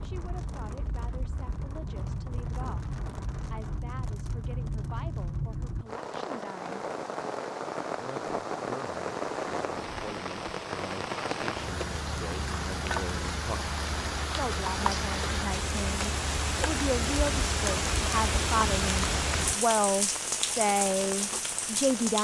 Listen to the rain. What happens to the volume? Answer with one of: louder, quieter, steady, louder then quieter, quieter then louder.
louder.